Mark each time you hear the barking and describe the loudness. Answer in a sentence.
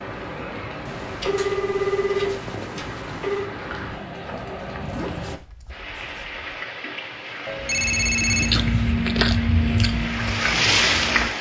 The barking can't be heard in this clip.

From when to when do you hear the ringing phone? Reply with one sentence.
The ringing phone can be heard from 0.8 to 3.5 s and from 7.5 to 8.6 s.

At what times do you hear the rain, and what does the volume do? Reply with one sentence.
You can hear the rain from 0.0 to 11.3 s, getting louder.